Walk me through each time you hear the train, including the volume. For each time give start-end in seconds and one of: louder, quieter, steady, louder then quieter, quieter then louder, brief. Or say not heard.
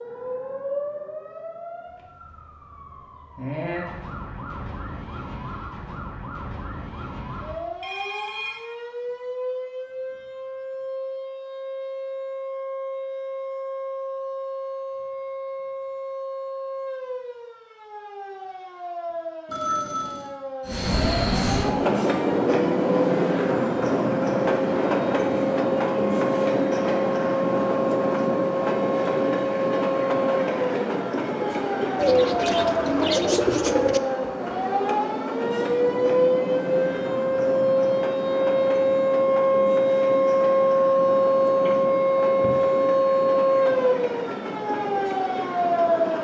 20.6-46.2 quieter.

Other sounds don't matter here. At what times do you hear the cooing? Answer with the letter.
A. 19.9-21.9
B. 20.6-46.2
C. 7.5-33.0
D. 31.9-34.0
D.